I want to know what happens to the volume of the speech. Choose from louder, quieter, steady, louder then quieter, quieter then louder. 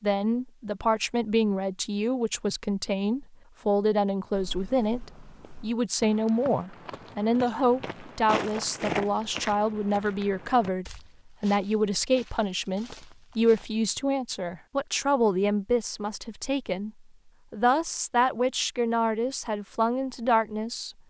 steady.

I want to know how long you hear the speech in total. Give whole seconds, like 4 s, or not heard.
20 s.